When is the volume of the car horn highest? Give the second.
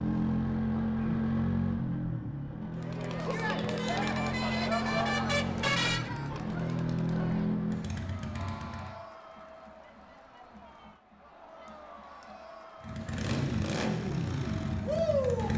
6 s.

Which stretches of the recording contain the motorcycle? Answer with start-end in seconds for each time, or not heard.
0.0-8.9, 12.8-15.5.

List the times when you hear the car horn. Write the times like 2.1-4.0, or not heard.
3.5-6.1, 8.3-9.2.